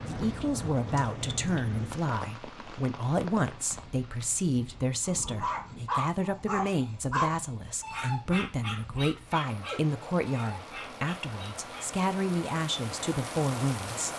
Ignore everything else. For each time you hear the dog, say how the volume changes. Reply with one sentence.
The dog can be heard from 5.0 to 11.9 s, getting quieter.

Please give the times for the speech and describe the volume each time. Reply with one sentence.
You can hear the speech from 0.1 to 14.1 s, at a steady volume.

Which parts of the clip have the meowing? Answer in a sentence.
You can't hear the meowing here.